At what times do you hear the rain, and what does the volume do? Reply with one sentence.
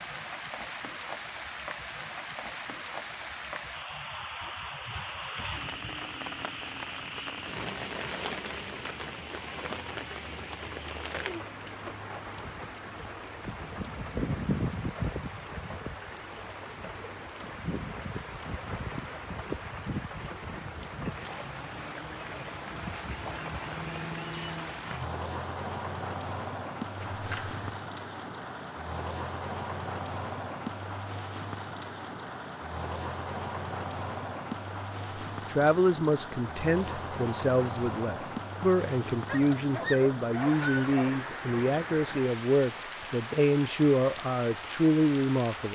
The rain can be heard from 0.0 to 45.6 s, at a steady volume.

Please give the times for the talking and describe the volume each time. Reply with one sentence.
You can hear the talking from 35.1 to 45.6 s, at a steady volume.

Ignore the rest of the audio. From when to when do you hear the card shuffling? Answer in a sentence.
The card shuffling can be heard from 26.9 to 27.8 s.